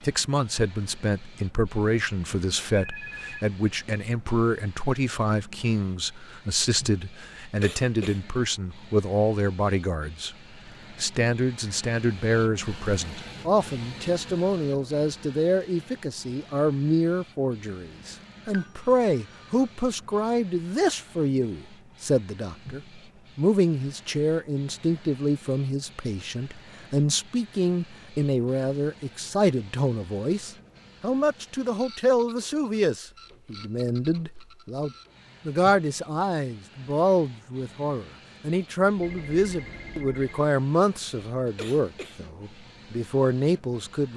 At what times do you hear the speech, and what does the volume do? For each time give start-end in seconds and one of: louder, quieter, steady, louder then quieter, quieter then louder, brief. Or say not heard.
0.0-44.1 steady.